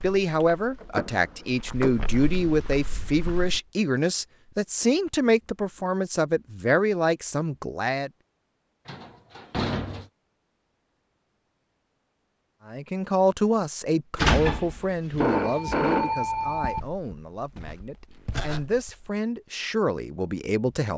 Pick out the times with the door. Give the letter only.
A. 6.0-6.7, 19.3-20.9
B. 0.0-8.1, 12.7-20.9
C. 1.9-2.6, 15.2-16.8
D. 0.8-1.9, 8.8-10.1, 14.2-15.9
D.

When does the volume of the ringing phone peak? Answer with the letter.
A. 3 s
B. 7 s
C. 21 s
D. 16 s
D.